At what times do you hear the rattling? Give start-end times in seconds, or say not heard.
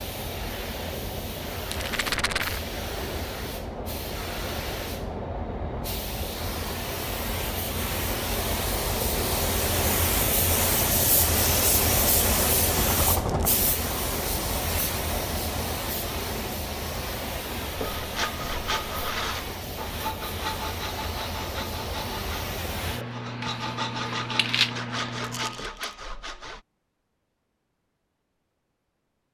1.6-2.6, 12.8-13.5, 25.2-25.9.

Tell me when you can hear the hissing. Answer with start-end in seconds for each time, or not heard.
0.0-25.6.